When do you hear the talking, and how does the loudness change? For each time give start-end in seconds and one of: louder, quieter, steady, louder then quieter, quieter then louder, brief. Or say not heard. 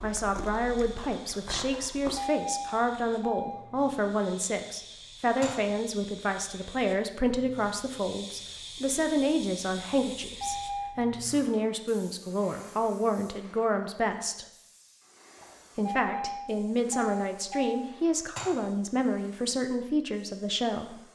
0.0-14.4 steady
15.8-21.0 steady.